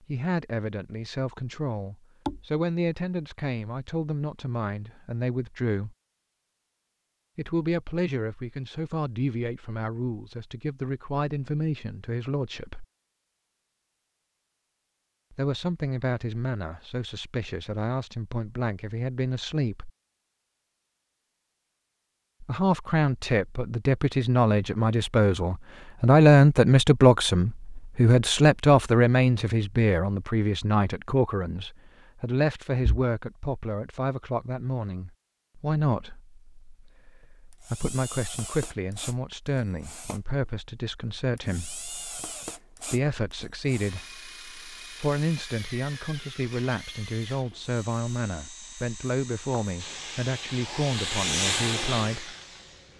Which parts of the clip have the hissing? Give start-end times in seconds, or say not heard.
49.8-52.9.